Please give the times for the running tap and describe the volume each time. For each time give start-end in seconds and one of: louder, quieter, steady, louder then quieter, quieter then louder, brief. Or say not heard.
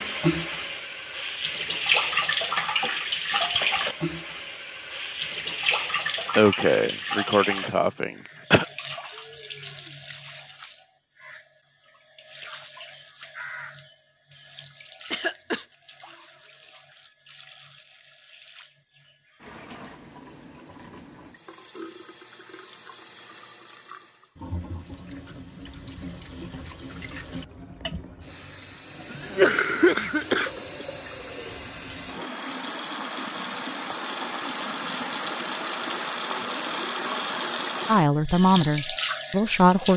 0.0-39.9 quieter then louder.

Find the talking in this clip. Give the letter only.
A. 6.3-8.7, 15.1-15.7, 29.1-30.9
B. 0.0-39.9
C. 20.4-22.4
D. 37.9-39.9
D.